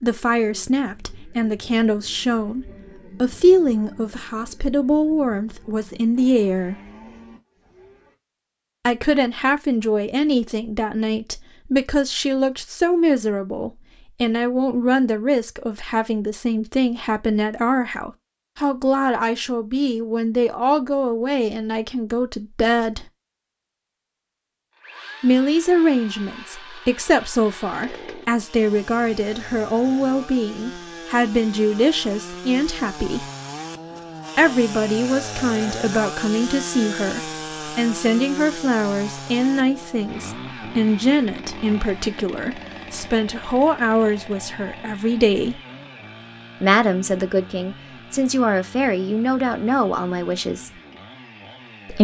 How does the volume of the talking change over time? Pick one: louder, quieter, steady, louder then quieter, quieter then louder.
steady.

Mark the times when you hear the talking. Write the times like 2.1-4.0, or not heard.
0.0-6.8, 8.8-23.1, 25.2-33.3, 34.4-45.6, 46.6-50.7.